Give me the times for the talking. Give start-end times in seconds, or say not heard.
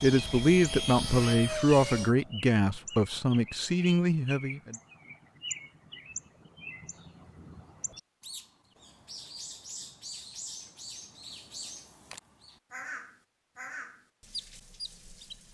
0.0-4.8.